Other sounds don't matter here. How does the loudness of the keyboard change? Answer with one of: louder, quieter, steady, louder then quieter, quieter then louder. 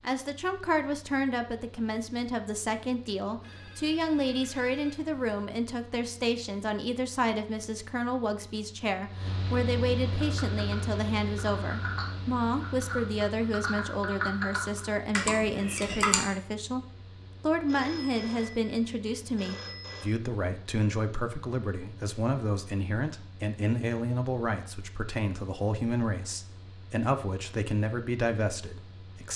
louder.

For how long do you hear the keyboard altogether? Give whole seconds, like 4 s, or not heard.
6 s.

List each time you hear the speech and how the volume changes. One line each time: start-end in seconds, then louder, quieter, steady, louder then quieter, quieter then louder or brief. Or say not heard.
0.0-29.3 steady.